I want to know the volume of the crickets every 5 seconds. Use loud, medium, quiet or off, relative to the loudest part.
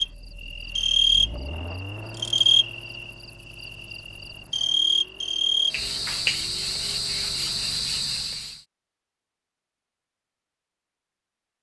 loud, loud, off.